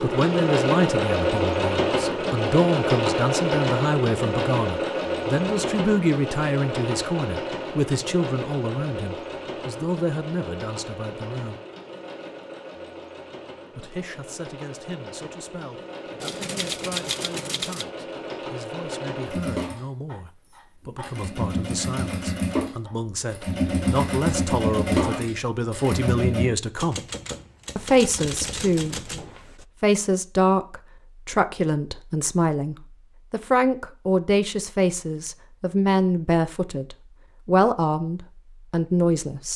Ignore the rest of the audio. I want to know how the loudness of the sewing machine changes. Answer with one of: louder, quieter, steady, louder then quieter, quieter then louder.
quieter then louder.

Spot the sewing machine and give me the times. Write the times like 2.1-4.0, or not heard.
0.0-26.4.